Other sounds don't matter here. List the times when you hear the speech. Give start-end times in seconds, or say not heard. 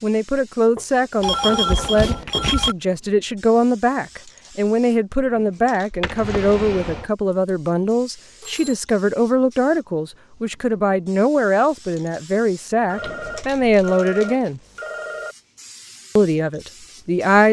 0.0-14.6, 16.1-17.4.